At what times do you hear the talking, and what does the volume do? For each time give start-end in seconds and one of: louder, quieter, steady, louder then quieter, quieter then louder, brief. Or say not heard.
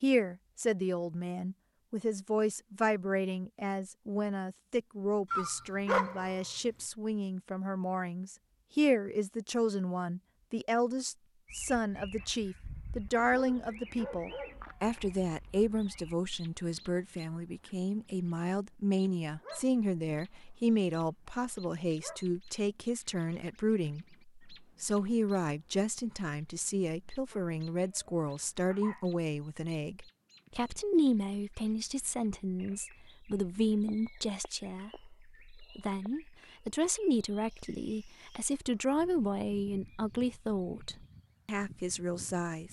0.0-42.6 steady.